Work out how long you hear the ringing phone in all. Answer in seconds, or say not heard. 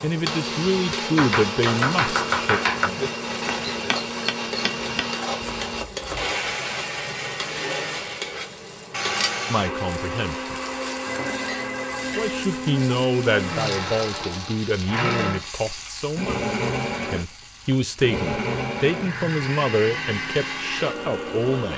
2 s.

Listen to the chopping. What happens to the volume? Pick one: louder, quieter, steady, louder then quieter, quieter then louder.
quieter.